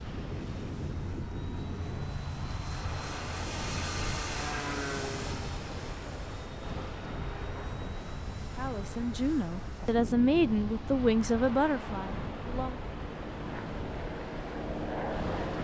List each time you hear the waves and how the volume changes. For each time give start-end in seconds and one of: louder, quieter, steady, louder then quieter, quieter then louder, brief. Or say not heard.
0.0-15.5 steady.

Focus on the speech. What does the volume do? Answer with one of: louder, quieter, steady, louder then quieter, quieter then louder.
louder then quieter.